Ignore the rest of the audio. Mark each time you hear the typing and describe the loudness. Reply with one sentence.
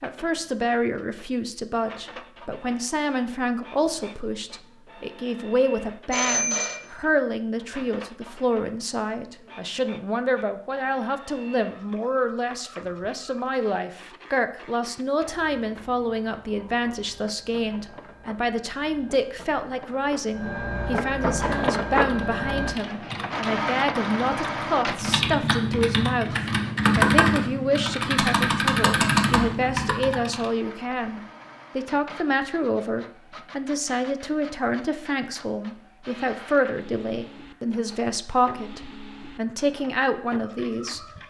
You can hear the typing from 21.4 to 30.5 s, getting louder.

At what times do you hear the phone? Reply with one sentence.
You can hear the phone from 6.1 to 6.8 s.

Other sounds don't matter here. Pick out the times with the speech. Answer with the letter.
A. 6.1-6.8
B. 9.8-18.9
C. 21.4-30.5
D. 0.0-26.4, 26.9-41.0
D.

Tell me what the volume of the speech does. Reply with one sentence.
The loudness of the speech stays about the same.